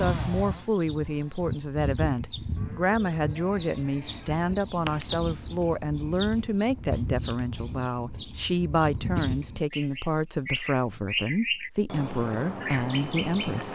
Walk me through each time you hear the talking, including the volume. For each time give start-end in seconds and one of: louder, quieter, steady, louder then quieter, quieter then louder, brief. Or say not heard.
0.0-13.7 steady.